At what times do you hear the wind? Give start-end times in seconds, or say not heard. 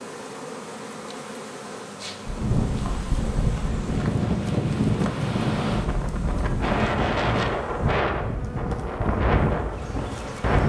2.2-10.6.